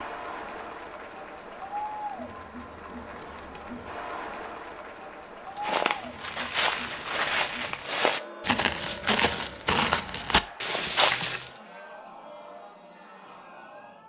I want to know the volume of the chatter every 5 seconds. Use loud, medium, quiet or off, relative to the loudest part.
loud, loud, medium.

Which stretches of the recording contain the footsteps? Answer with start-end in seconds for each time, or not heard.
5.5-11.5.